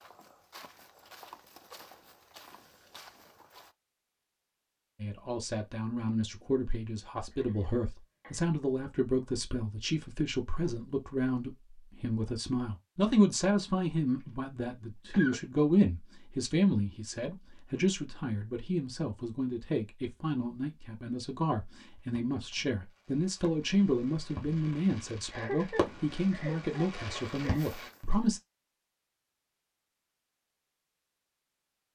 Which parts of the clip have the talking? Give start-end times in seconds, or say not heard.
5.0-28.4.